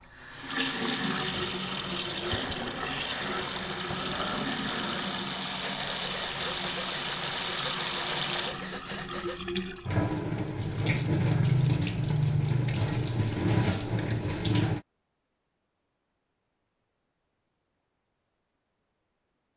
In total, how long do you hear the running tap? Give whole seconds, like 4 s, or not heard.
15 s.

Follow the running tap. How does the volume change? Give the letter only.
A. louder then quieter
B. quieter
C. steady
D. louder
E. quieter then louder
C.